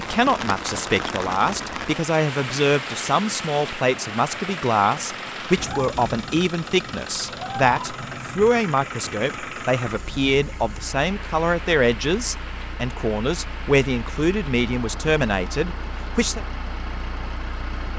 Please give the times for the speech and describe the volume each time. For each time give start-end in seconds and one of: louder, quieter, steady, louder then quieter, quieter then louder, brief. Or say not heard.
0.0-16.4 steady.